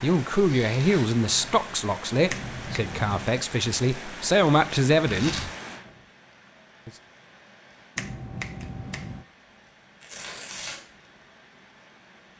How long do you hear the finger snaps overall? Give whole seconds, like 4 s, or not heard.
2 s.